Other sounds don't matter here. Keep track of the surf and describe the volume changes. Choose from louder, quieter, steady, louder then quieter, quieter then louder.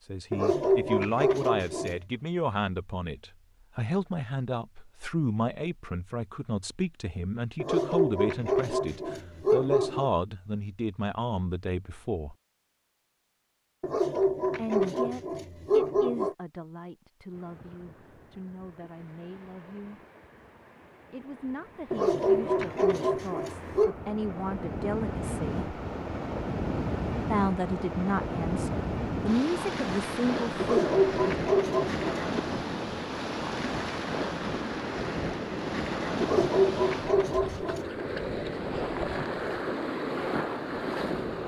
louder.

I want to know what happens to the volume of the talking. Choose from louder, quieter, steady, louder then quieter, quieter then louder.
quieter then louder.